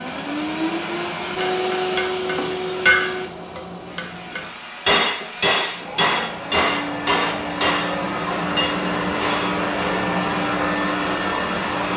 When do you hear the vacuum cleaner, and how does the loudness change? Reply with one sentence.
The vacuum cleaner can be heard from 0.0 to 11.9 s, getting quieter then louder.